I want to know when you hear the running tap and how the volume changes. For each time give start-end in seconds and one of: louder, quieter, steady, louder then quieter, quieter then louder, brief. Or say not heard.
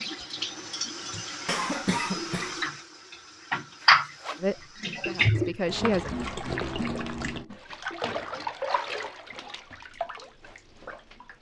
0.0-11.3 louder then quieter.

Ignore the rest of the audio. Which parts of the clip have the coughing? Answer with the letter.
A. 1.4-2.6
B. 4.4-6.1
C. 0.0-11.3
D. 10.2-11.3
A.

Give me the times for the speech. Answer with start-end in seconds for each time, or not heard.
4.4-6.1.